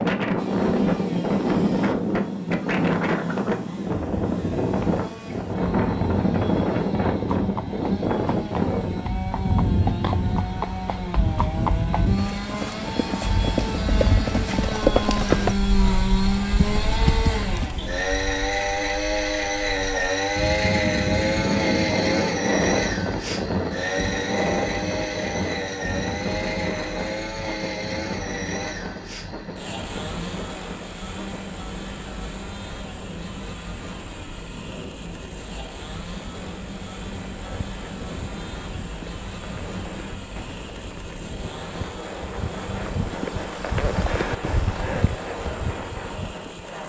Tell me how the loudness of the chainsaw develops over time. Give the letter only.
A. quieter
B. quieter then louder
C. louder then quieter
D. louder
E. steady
C.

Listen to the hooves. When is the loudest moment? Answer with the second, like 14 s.
15 s.